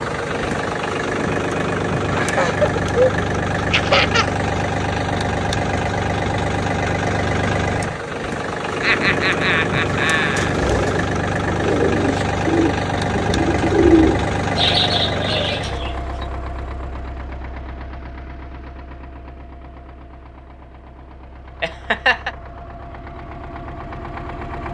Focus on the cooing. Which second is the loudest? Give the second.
14 s.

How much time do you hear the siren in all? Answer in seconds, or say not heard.
not heard.